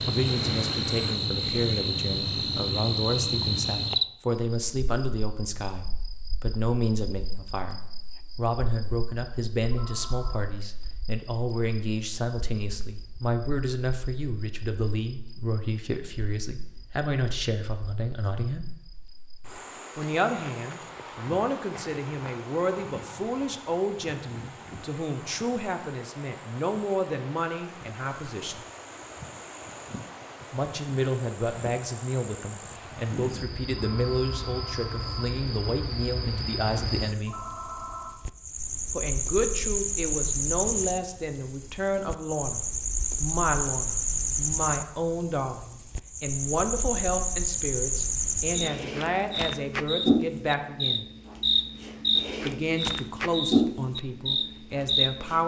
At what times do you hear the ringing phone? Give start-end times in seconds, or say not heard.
9.7-10.4, 33.9-35.3, 37.2-38.2.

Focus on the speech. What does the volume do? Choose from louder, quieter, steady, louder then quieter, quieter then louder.
steady.